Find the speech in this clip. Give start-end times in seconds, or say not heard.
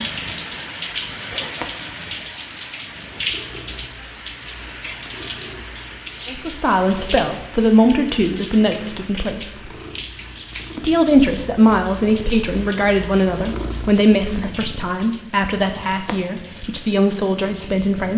6.3-9.7, 10.8-18.1.